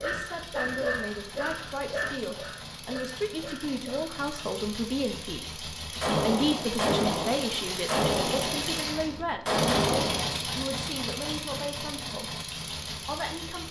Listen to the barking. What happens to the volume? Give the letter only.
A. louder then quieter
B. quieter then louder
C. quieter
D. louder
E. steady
C.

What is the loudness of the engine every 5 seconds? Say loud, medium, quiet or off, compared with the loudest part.
medium, loud, loud.